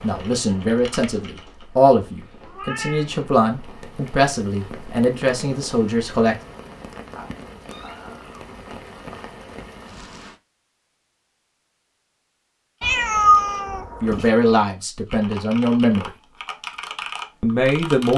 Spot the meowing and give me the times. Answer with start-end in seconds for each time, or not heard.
2.1-3.3, 7.2-8.4, 12.8-14.3.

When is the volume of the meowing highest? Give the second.
13 s.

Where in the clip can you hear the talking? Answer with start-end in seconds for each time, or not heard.
0.0-6.3, 14.0-16.1, 17.4-18.1.